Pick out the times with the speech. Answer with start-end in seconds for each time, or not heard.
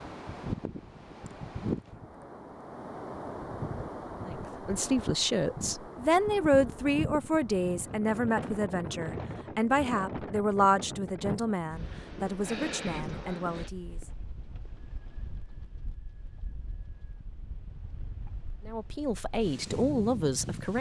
4.2-13.9, 18.6-20.7.